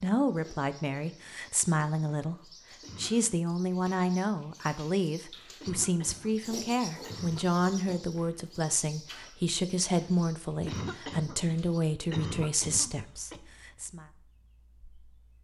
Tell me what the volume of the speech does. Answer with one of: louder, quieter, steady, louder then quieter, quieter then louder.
steady.